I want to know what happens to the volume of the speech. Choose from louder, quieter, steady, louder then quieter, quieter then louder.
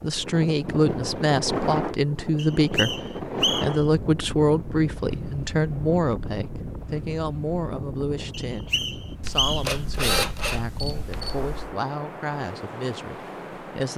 quieter.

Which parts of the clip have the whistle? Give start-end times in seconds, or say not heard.
2.4-3.9, 8.3-9.8.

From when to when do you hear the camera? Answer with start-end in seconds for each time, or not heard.
9.2-11.8.